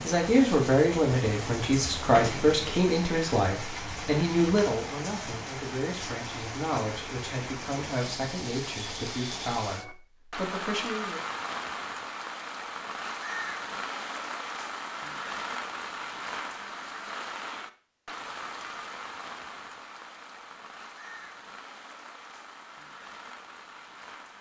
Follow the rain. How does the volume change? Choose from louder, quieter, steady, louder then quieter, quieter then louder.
quieter.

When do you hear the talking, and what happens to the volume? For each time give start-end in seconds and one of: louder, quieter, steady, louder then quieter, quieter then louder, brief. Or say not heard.
0.0-11.2 quieter.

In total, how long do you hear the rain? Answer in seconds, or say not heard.
24 s.